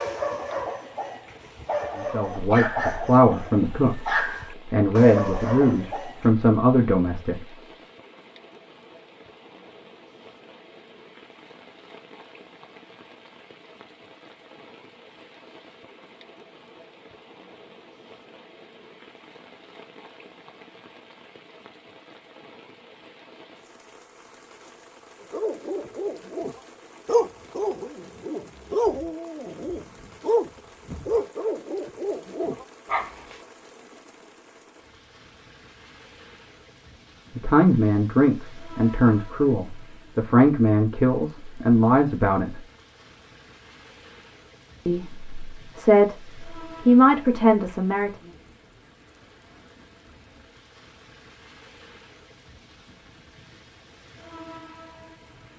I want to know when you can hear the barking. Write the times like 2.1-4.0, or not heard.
0.0-6.3, 25.2-33.4.